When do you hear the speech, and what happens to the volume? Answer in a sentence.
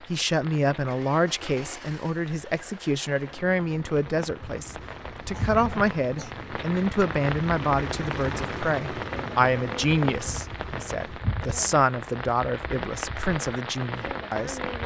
You can hear the speech from 0.1 to 14.6 s, at a steady volume.